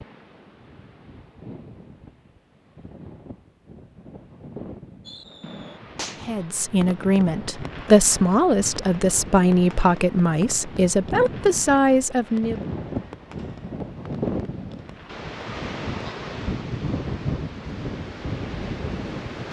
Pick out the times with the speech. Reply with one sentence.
The speech can be heard from 6.2 to 12.6 s.